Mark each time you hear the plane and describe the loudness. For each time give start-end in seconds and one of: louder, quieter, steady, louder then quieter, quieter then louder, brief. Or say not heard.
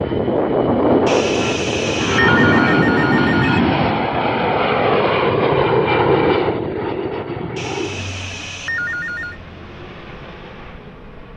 0.0-11.3 quieter.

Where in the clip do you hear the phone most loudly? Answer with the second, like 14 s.
2 s.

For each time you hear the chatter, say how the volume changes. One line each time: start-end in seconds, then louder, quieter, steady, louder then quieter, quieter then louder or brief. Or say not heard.
not heard.